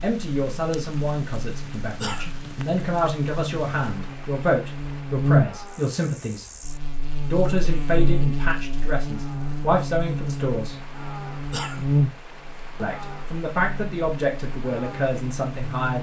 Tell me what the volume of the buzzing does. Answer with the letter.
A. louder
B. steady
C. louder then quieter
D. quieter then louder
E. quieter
C.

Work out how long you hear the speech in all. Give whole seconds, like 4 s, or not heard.
13 s.